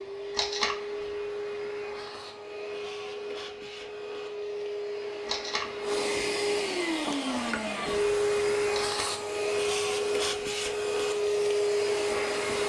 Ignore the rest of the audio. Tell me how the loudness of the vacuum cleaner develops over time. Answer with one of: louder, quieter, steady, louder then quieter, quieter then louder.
louder.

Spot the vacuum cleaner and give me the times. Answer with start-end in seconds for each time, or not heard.
0.0-12.6.